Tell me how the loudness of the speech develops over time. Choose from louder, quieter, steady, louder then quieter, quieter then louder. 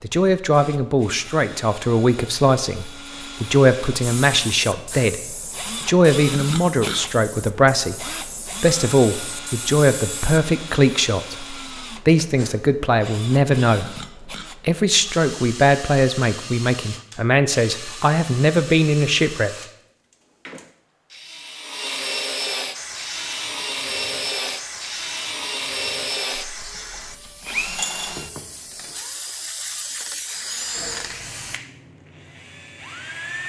steady.